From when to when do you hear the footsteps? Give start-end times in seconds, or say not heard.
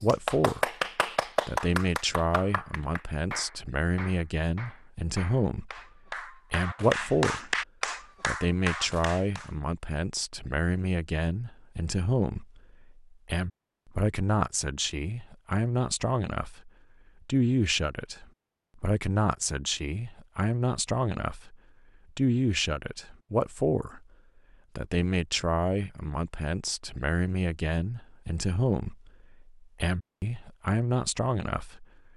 not heard.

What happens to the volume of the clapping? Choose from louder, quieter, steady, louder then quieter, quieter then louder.
quieter then louder.